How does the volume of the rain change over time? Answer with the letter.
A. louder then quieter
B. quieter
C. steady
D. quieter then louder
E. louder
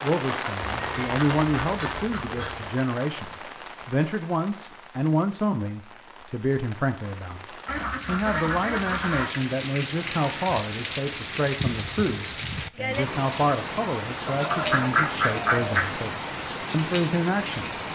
D.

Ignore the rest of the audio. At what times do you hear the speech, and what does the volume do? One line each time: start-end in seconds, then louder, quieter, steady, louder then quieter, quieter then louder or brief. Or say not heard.
0.0-17.7 steady.